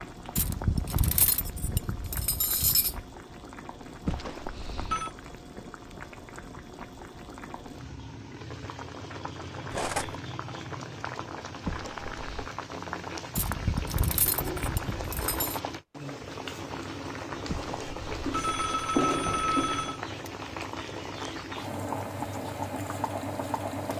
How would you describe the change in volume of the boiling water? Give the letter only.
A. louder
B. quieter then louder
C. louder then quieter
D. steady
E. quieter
A.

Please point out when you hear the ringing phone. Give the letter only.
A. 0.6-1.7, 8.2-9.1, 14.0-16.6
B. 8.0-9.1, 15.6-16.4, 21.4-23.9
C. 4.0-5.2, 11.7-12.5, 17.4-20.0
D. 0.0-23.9
C.